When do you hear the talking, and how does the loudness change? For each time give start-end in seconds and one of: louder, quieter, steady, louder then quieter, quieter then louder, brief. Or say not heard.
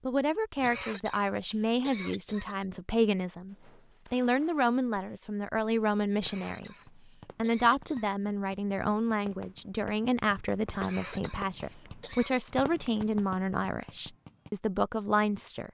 0.1-15.6 steady.